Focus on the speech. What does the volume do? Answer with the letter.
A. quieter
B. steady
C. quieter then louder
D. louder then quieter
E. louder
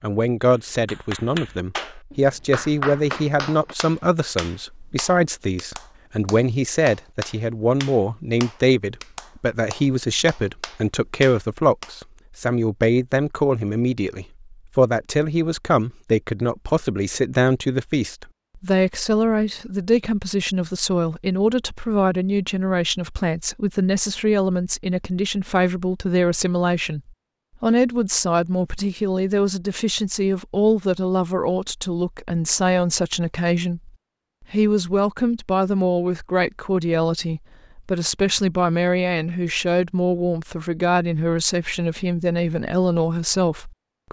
B.